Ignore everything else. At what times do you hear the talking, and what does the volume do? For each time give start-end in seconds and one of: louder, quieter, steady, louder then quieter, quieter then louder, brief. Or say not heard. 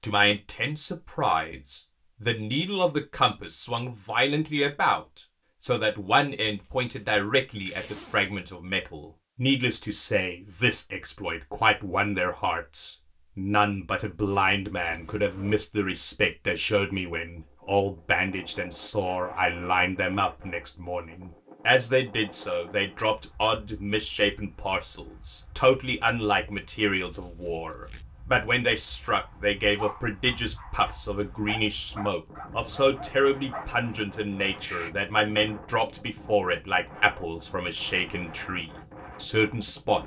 0.0-40.0 steady.